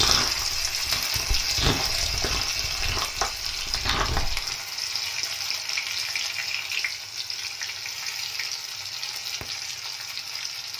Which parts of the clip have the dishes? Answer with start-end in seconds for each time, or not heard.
not heard.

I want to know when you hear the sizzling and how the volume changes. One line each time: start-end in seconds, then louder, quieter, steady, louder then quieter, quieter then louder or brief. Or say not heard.
0.0-10.7 quieter.